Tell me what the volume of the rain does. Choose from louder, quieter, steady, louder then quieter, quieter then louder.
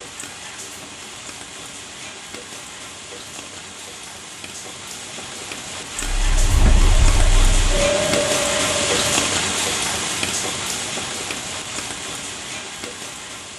louder then quieter.